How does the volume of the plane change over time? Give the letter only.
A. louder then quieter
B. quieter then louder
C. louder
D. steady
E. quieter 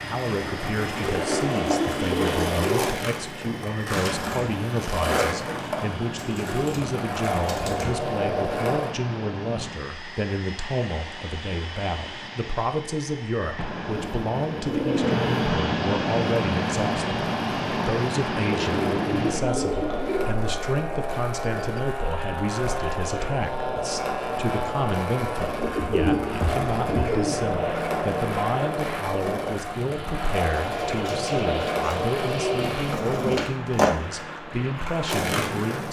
A.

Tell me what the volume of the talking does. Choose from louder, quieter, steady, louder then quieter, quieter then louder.
steady.